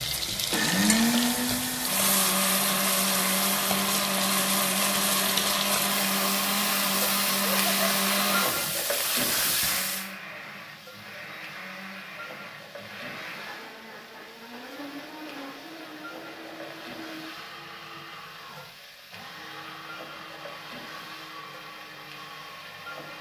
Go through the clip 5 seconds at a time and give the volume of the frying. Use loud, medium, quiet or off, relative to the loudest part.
loud, loud, quiet, quiet, quiet.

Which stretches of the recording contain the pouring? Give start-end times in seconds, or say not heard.
not heard.